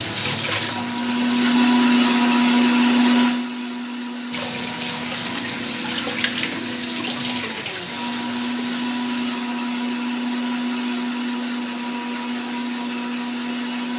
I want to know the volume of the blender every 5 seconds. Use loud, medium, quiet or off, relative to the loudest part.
loud, medium, medium.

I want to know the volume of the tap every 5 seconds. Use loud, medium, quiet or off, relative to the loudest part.
loud, loud, off.